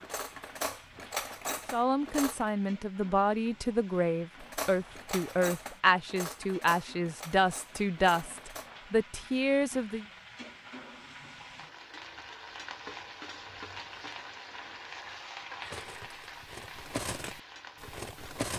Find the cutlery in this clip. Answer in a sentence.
You can hear the cutlery from 0.0 to 2.5 s, from 4.4 to 8.7 s and from 15.6 to 18.5 s.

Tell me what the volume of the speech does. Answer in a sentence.
The loudness of the speech stays about the same.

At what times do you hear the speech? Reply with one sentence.
The speech can be heard from 1.7 to 10.1 s.